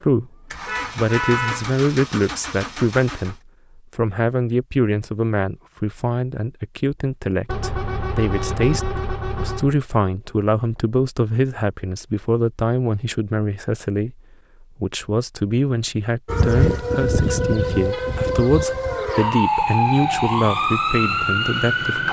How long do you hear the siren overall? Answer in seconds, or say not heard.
6 s.